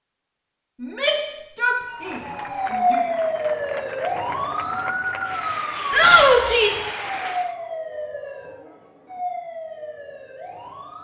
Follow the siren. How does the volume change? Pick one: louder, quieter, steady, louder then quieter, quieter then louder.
quieter.